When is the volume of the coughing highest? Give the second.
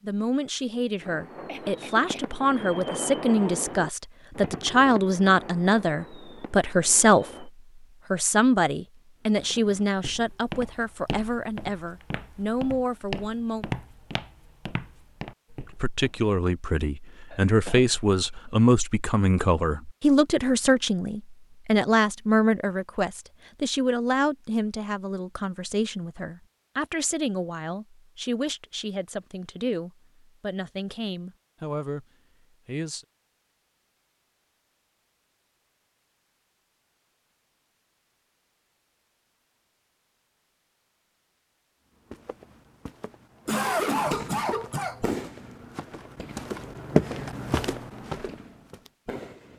44 s.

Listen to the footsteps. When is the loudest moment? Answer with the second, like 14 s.
47 s.